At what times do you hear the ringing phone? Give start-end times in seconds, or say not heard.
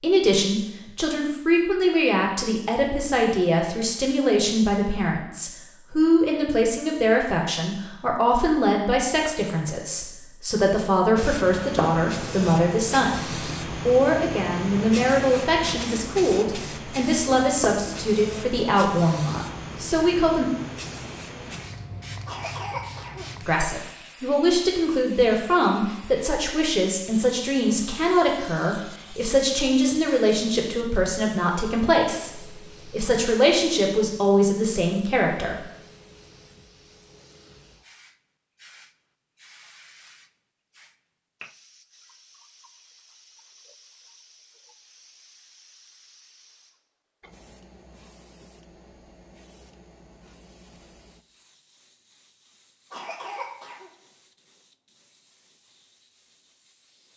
not heard.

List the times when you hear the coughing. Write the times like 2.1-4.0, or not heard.
22.2-23.4, 52.9-53.9.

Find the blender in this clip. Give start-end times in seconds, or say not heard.
not heard.